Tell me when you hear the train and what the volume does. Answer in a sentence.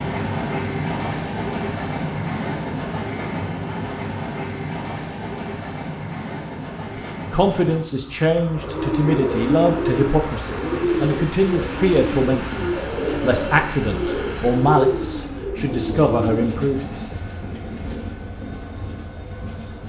You can hear the train from 0.0 to 19.8 s, getting quieter.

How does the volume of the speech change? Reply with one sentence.
The loudness of the speech stays about the same.